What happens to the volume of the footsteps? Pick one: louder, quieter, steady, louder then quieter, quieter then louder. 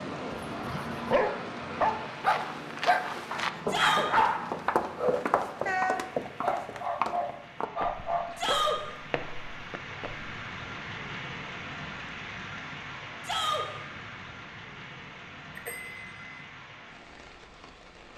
quieter.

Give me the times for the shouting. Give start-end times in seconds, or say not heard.
3.6-4.1, 8.3-8.8, 13.2-13.7.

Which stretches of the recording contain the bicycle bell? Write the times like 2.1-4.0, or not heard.
15.6-16.4.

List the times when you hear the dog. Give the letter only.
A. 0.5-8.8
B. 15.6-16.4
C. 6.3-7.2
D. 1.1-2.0
A.